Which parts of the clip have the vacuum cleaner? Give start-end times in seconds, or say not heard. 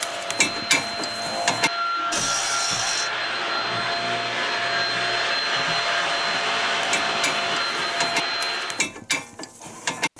0.0-8.8.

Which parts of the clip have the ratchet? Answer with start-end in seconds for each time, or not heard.
0.0-3.1, 6.8-10.1.